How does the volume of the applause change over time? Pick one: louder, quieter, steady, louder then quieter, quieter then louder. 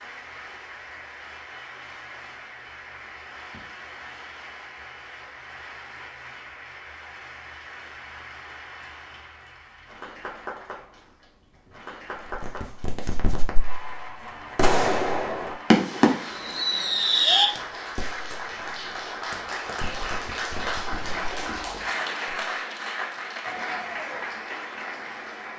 louder.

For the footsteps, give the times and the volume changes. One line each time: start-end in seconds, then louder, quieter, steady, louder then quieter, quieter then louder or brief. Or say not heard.
not heard.